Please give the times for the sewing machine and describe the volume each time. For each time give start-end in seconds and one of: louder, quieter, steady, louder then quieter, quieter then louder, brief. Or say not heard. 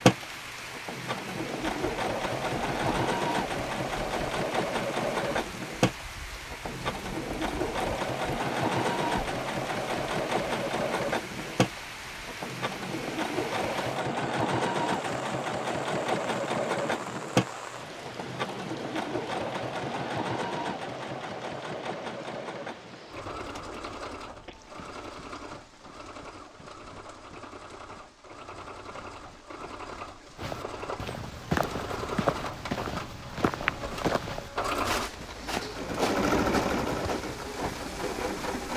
0.0-38.7 quieter then louder.